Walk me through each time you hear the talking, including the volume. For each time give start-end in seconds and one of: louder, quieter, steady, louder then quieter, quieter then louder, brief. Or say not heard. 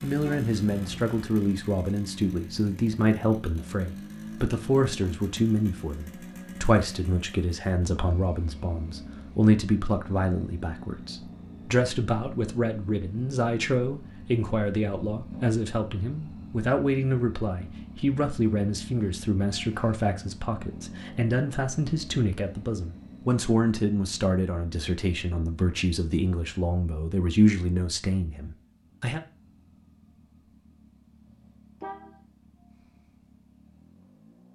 0.0-29.2 steady.